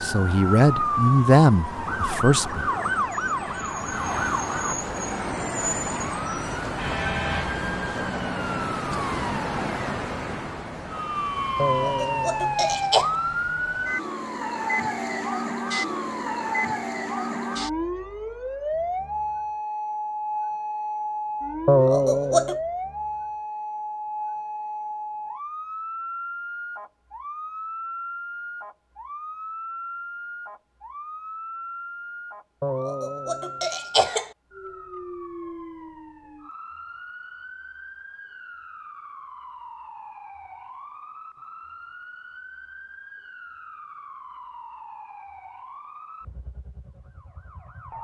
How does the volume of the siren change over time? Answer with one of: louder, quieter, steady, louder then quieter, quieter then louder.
quieter.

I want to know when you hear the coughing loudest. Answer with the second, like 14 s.
22 s.